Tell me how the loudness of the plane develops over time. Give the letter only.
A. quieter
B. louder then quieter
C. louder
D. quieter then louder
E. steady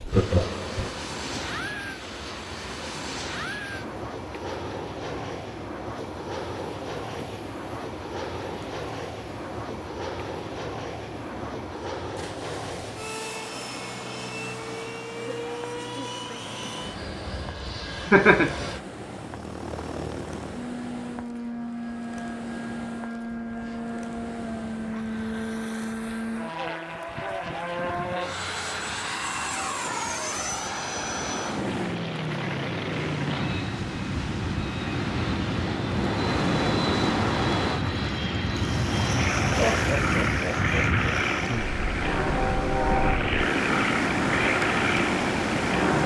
C.